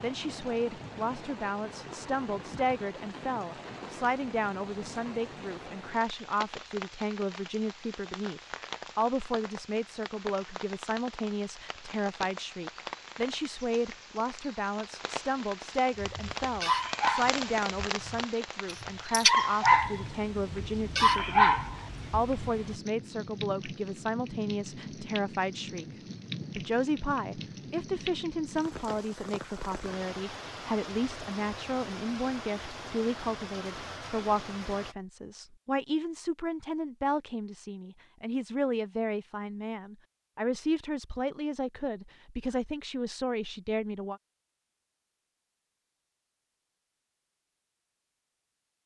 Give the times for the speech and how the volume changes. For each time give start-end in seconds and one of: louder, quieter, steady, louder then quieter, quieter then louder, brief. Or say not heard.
0.0-25.9 steady
26.6-44.2 steady.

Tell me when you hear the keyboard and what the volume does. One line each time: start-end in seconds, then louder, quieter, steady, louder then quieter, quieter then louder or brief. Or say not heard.
not heard.